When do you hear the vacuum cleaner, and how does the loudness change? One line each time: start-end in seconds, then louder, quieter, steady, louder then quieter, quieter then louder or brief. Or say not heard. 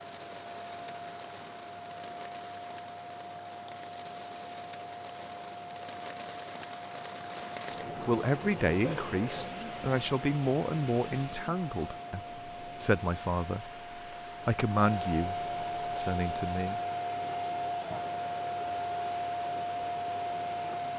0.0-20.9 louder.